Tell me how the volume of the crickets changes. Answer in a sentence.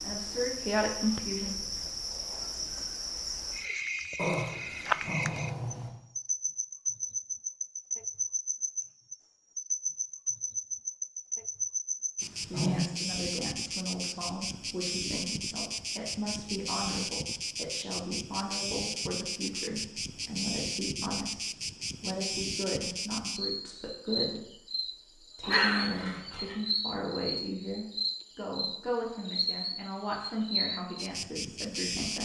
The volume of the crickets stays about the same.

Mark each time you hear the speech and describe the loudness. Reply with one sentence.
The speech can be heard briefly from 0.0 to 1.6 s; and from 12.4 to 32.1 s, at a steady volume.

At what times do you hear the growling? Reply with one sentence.
You can hear the growling from 4.2 to 5.9 s, from 12.2 to 12.8 s and from 25.4 to 26.6 s.